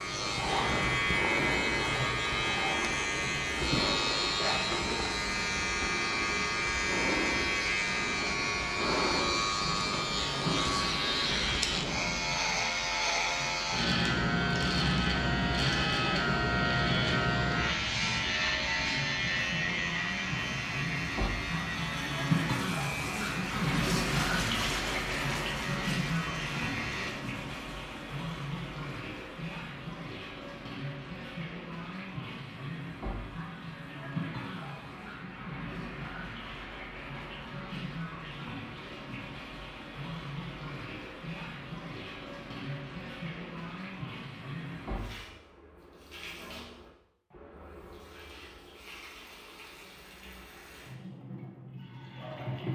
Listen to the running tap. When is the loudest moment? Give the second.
24 s.